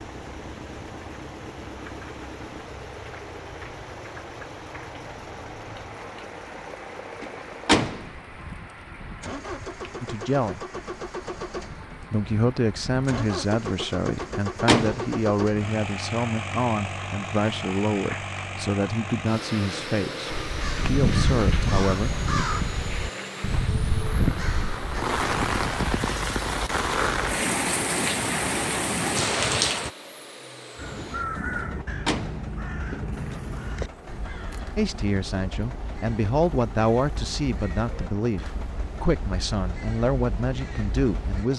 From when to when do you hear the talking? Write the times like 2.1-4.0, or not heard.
10.0-10.7, 12.1-22.1, 34.8-41.5.